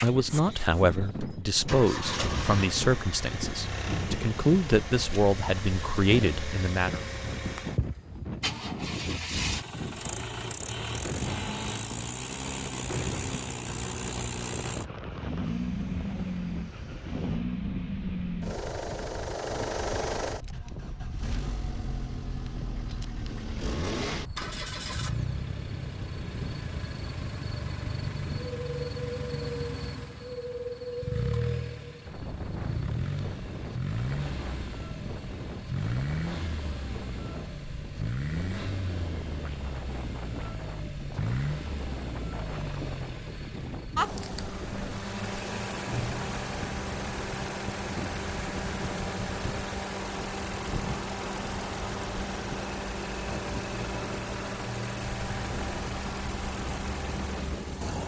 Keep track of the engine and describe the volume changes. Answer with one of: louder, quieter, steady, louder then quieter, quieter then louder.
steady.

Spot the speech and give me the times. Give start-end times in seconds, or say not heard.
0.0-7.0.